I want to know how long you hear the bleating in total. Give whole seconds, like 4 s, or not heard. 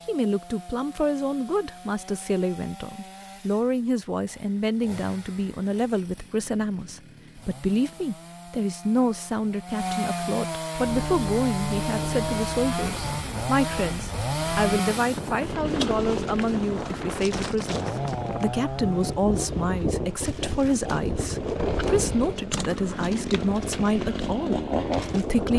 not heard.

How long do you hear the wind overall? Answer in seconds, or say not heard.
15 s.